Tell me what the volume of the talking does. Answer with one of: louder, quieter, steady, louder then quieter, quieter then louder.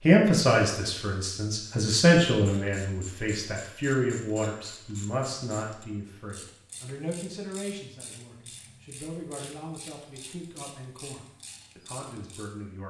quieter.